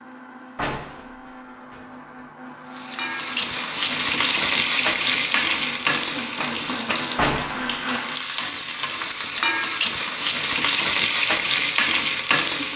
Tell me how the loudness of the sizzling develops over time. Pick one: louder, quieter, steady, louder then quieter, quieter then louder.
quieter then louder.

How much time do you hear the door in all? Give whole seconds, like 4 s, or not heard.
2 s.